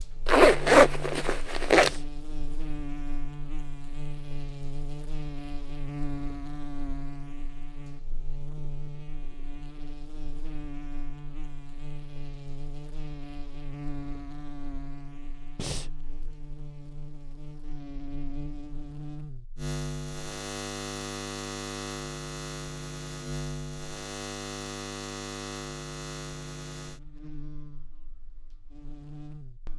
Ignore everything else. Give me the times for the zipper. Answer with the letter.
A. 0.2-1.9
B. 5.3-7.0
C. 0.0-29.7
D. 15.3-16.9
A.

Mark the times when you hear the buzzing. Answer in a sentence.
The buzzing can be heard from 0.0 to 29.7 s.